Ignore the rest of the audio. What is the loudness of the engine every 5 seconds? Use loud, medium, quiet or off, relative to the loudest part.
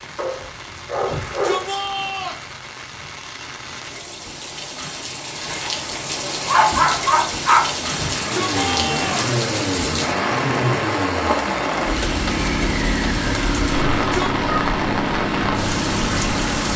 off, loud, loud, loud.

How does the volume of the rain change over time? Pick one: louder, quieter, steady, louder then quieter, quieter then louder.
louder.